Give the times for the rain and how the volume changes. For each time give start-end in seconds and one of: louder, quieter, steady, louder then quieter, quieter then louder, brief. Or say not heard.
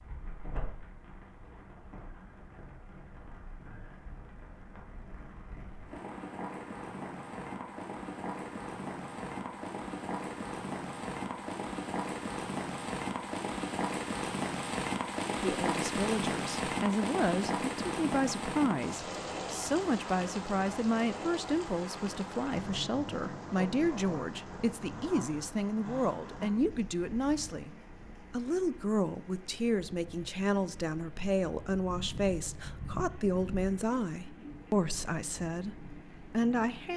0.0-36.9 louder then quieter.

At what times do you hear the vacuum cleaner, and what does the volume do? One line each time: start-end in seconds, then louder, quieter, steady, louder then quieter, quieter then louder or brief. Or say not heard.
not heard.